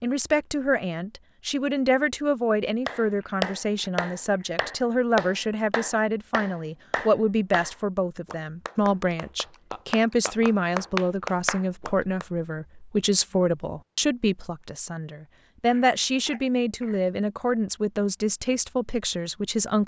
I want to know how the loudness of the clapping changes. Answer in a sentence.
The loudness of the clapping goes down, then up.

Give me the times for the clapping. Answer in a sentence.
You can hear the clapping from 2.9 to 12.2 s.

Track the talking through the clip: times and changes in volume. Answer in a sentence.
You can hear the talking from 0.0 to 19.8 s, at a steady volume.